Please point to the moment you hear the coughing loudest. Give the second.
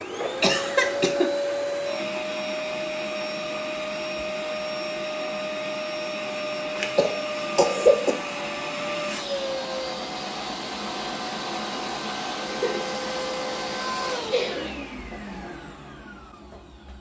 8 s.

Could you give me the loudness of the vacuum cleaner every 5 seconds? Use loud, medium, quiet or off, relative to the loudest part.
loud, loud, loud, quiet.